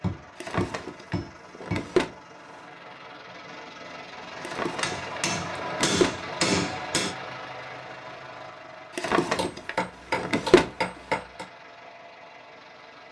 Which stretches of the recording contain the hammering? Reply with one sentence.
The hammering can be heard from 0.0 to 1.9 s, from 4.8 to 7.2 s and from 9.3 to 11.4 s.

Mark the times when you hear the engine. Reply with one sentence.
You can hear the engine from 0.0 to 13.0 s.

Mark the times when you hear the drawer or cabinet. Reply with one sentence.
The drawer or cabinet can be heard from 0.4 to 2.1 s, from 4.4 to 6.2 s and from 8.9 to 10.7 s.